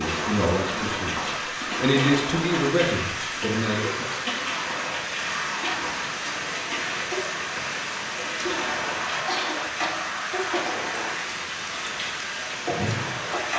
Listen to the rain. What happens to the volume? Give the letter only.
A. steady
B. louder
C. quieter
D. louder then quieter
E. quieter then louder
A.